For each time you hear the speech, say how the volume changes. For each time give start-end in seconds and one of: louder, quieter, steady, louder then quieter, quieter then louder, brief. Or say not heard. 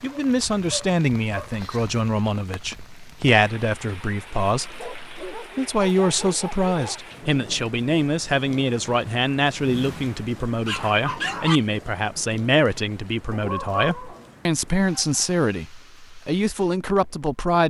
0.0-17.6 steady.